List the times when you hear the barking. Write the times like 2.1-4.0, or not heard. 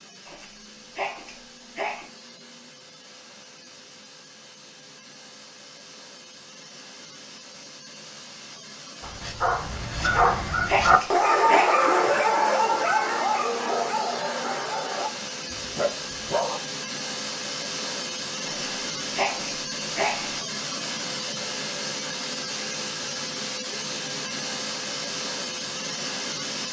9.0-16.6.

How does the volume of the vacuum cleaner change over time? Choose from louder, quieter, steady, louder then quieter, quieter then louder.
louder.